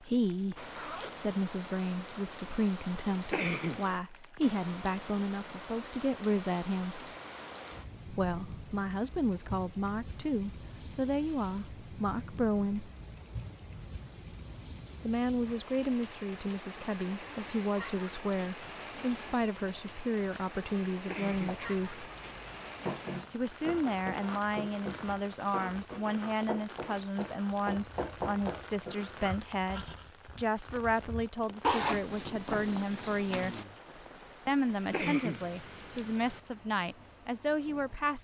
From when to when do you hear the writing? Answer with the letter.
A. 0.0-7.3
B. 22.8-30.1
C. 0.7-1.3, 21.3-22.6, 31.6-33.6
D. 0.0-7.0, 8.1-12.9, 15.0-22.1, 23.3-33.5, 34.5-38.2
B.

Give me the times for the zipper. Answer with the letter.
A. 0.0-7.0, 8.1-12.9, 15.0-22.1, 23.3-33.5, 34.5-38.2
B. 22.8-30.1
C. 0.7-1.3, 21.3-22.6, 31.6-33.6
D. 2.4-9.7
C.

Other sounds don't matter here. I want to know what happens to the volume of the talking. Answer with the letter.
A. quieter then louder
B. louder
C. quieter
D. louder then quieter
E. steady
E.